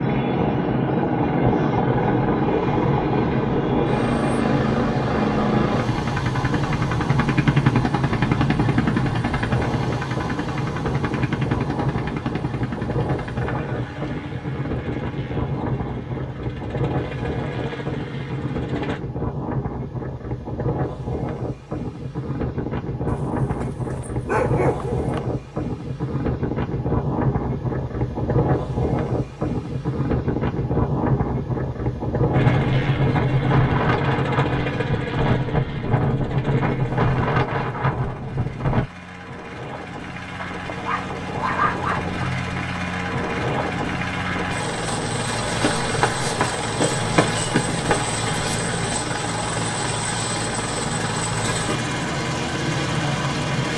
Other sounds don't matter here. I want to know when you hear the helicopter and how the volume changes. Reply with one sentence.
You can hear the helicopter from 0.0 to 19.0 s, getting quieter; and from 32.3 to 53.7 s, getting quieter then louder.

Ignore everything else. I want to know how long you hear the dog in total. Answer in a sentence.
You can hear the dog for 4 seconds altogether.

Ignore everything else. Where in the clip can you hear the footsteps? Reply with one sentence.
You can hear the footsteps from 45.5 to 48.5 s.